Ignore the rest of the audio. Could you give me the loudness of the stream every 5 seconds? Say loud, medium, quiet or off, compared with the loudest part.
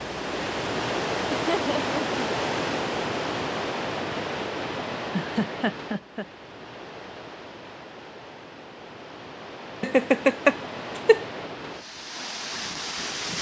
loud, medium, medium.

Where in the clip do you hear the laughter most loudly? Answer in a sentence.
The loudest moment of the laughter is at 10 seconds.